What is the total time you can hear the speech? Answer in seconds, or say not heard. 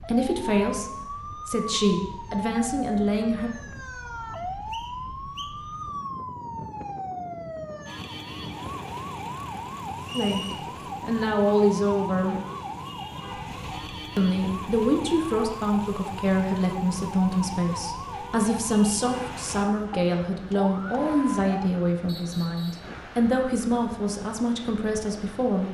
17 s.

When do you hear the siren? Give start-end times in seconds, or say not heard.
0.0-21.7.